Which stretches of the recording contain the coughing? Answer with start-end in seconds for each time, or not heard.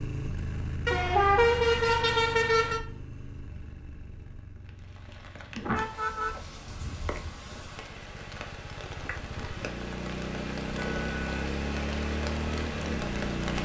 not heard.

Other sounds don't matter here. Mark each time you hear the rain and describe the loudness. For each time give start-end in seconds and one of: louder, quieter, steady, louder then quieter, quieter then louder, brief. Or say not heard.
4.7-13.6 louder.